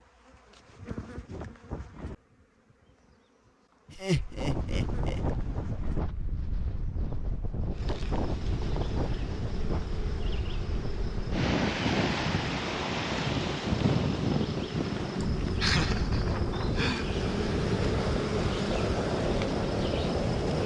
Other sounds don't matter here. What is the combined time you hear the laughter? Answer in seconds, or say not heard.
3 s.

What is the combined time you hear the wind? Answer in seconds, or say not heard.
16 s.